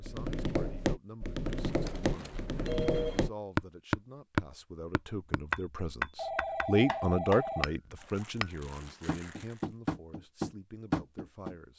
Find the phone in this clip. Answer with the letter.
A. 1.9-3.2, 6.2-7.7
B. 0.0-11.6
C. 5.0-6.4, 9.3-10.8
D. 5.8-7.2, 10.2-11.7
A.